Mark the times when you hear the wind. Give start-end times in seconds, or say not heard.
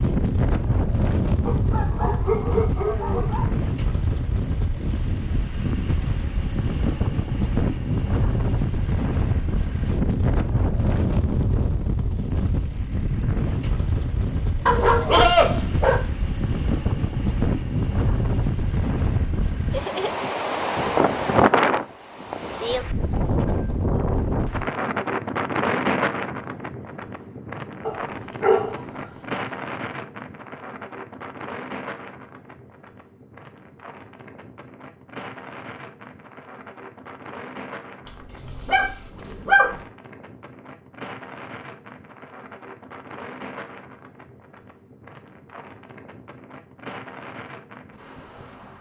0.0-48.7.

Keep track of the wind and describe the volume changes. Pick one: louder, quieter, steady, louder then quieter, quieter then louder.
quieter.